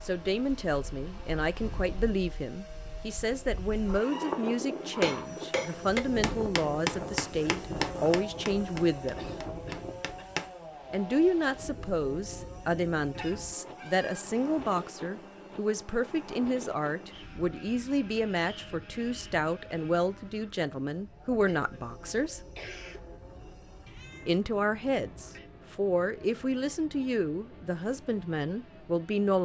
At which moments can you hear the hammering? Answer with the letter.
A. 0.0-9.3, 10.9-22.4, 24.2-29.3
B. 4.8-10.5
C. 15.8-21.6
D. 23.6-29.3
B.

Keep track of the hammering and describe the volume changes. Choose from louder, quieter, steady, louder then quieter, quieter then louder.
quieter.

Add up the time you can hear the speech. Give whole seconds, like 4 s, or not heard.
26 s.